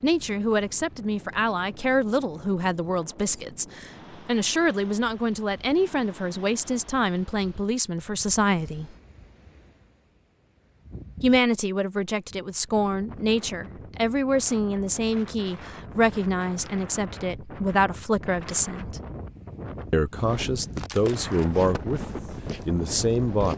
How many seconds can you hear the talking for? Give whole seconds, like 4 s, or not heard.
20 s.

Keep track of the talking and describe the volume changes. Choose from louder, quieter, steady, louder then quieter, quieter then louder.
steady.